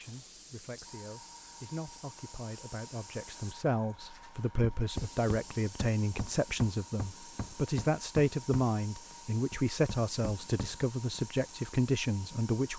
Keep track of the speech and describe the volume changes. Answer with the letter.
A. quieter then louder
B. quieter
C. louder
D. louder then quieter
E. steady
C.